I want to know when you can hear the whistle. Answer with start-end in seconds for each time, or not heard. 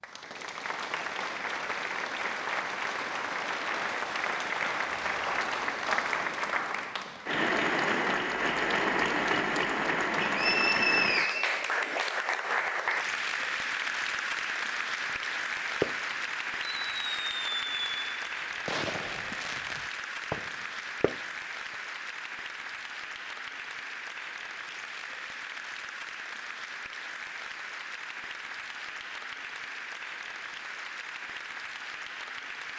10.2-11.6.